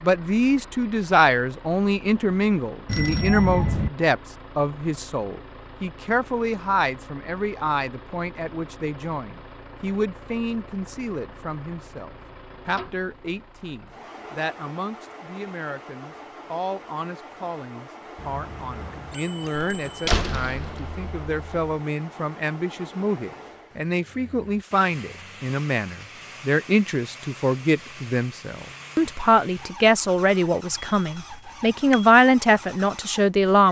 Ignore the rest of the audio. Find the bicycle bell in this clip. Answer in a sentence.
The bicycle bell can be heard from 2.9 to 3.9 s, from 18.1 to 19.9 s and from 30.8 to 32.1 s.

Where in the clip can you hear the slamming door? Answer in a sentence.
You can hear the slamming door from 19.7 to 21.7 s.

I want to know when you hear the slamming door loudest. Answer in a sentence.
The volume of the slamming door peaks at 20 seconds.